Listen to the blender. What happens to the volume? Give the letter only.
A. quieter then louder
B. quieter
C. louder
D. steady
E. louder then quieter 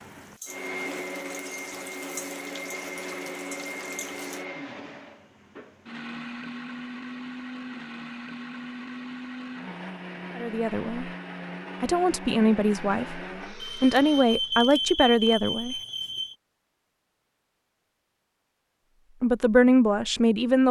D.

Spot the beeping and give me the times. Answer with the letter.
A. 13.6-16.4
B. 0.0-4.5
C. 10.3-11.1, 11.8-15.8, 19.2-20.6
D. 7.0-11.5
A.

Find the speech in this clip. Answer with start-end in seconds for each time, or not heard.
10.3-11.1, 11.8-15.8, 19.2-20.6.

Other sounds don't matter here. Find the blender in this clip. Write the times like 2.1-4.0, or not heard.
0.0-14.2.